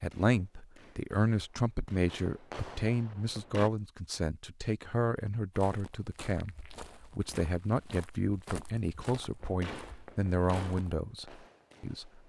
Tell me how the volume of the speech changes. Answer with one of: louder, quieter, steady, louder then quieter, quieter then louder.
steady.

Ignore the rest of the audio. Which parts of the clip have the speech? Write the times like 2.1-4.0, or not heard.
0.0-12.2.